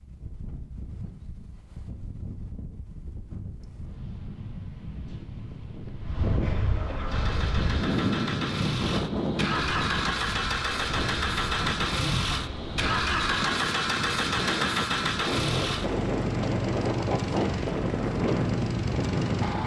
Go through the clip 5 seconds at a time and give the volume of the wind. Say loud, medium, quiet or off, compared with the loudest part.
quiet, loud, medium, loud.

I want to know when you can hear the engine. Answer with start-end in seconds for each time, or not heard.
7.0-19.6.